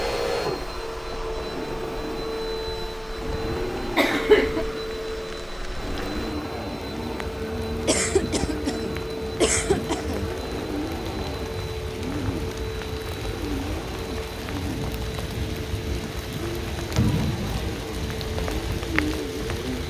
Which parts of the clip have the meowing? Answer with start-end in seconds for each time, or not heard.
not heard.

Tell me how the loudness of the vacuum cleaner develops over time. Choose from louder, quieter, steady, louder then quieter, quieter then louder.
steady.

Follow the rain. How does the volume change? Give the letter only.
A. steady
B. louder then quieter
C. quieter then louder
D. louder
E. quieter
D.